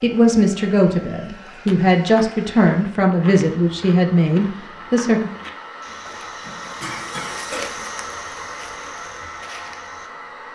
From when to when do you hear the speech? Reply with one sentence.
The speech can be heard from 0.0 to 5.3 s.